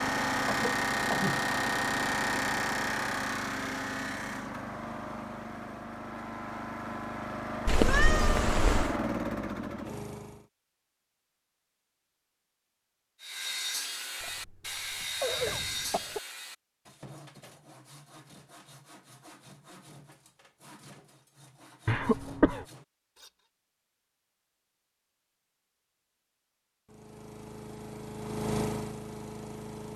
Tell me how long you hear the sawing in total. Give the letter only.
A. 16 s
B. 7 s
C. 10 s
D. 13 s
C.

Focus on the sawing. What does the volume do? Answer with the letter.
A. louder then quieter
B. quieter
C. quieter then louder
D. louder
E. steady
B.